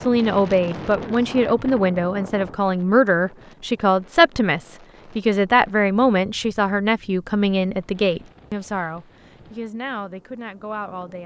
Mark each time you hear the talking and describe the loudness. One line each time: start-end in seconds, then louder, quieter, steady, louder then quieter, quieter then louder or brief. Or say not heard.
0.1-11.2 quieter.